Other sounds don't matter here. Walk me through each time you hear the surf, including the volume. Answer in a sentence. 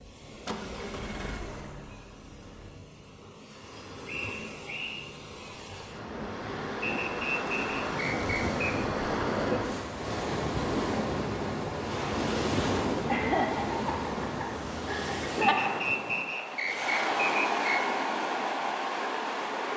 You can hear the surf from 0.0 to 19.7 s, getting louder.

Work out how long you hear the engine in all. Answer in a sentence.
You can hear the engine for 3 seconds altogether.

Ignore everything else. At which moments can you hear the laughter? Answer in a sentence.
You can hear the laughter from 13.1 to 15.8 s.